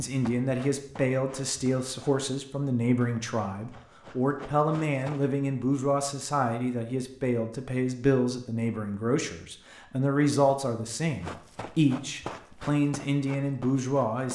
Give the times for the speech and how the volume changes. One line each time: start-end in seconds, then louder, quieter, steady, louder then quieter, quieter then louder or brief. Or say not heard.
0.0-14.3 steady.